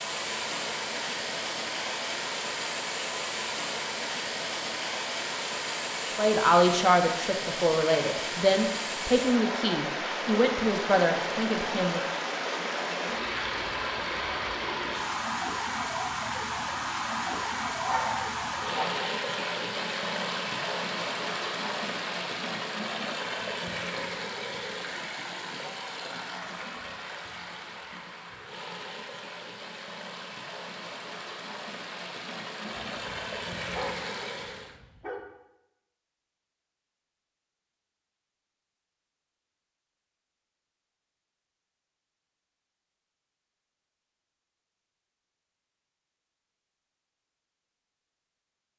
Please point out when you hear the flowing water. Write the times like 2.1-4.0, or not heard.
0.0-34.8.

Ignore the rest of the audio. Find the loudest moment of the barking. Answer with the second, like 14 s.
18 s.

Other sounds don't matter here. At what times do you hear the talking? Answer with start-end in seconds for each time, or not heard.
6.2-12.0.